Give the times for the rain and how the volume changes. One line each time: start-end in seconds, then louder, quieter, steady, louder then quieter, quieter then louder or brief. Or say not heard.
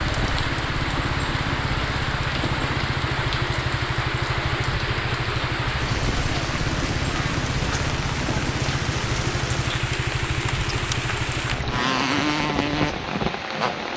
0.0-13.9 steady.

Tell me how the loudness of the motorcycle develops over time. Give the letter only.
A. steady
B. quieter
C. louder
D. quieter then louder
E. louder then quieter
A.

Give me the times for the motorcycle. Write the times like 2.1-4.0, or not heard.
0.0-13.9.